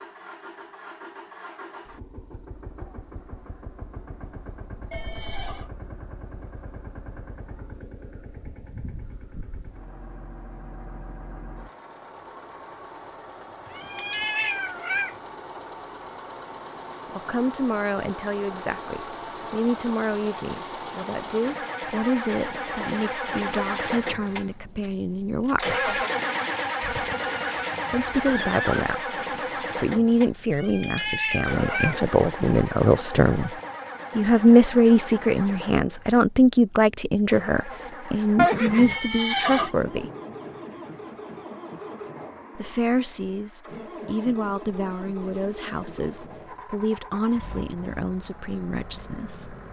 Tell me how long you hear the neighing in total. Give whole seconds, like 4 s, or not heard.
4 s.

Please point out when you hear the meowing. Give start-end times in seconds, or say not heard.
13.7-15.2, 30.5-32.0.